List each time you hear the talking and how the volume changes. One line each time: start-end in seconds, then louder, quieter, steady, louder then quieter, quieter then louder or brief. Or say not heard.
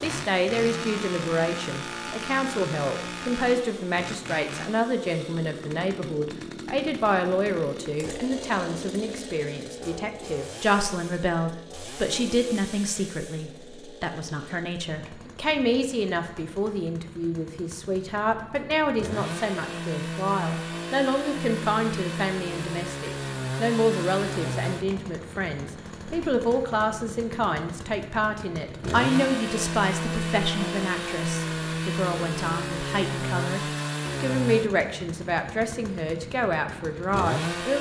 0.0-37.7 steady.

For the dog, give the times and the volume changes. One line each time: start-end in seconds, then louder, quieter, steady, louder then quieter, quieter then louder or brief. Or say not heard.
not heard.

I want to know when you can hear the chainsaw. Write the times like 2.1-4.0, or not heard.
0.0-37.7.